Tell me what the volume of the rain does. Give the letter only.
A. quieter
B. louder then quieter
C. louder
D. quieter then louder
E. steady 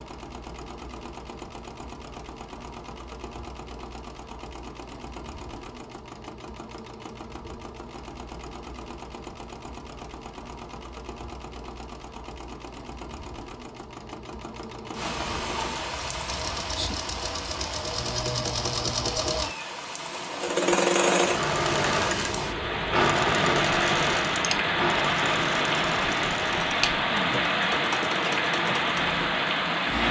C.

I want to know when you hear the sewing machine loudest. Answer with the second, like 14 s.
21 s.